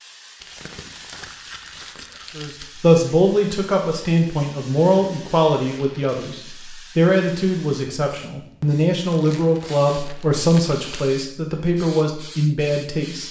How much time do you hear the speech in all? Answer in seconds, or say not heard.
11 s.